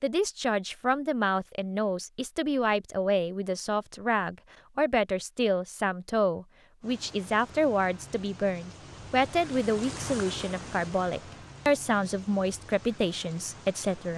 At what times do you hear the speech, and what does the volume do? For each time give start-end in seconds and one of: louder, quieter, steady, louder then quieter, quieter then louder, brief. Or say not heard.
0.0-14.1 steady.